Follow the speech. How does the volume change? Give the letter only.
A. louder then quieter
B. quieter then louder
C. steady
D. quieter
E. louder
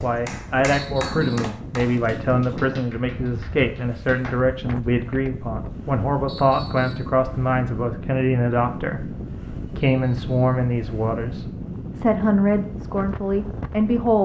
C.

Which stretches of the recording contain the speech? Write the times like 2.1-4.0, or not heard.
0.0-14.1.